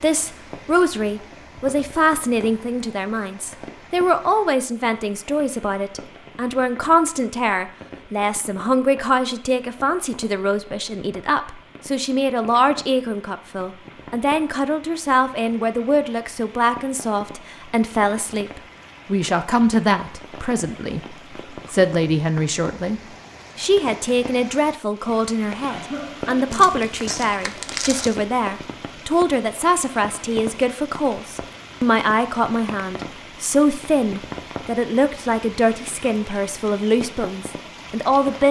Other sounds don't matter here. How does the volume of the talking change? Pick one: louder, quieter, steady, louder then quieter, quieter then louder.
steady.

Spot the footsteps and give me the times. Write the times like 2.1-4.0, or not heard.
not heard.